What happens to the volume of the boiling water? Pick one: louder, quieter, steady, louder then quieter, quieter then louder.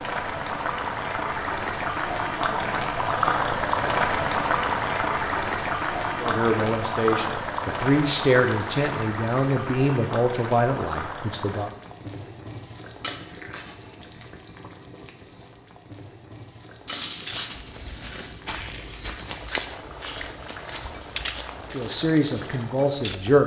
quieter.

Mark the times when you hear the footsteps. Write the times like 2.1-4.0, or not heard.
17.2-23.1.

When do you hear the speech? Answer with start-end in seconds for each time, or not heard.
6.2-11.7, 21.7-23.4.